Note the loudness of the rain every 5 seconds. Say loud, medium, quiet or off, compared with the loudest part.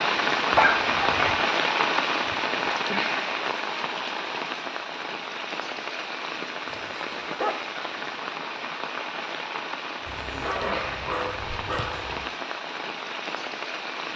loud, medium, medium.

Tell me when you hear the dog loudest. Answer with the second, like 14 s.
1 s.